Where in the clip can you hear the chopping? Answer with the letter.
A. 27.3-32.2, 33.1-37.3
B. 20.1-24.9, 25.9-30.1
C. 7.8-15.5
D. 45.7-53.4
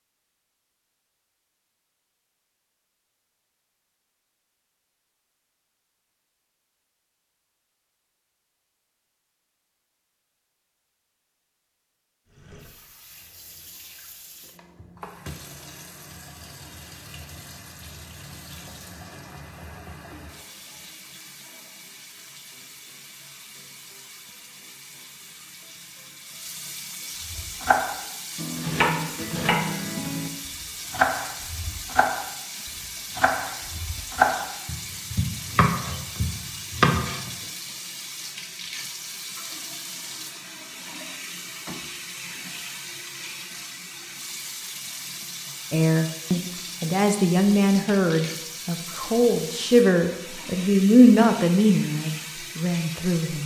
A.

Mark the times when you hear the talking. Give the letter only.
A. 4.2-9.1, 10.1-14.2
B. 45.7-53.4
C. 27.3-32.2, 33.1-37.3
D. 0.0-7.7
B.